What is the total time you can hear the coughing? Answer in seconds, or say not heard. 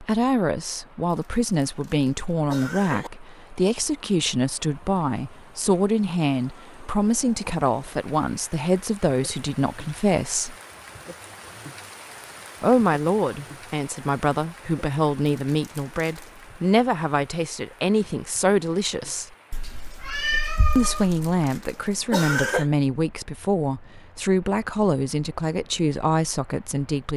5 s.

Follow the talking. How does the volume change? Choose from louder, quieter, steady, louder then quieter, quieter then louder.
steady.